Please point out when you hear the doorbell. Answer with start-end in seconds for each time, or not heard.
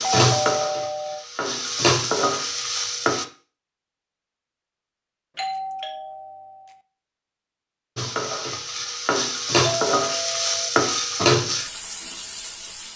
0.0-1.2, 5.3-6.8, 9.6-10.7.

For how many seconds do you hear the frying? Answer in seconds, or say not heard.
8 s.